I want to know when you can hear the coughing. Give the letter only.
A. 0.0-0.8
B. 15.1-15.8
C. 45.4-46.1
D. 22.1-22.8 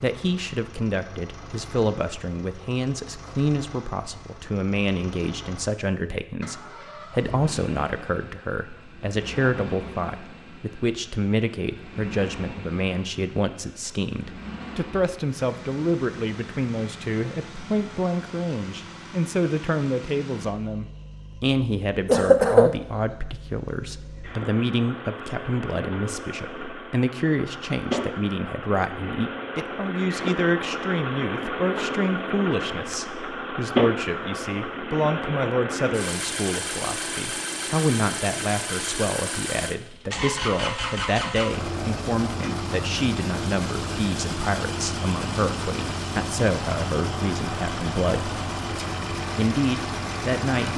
D.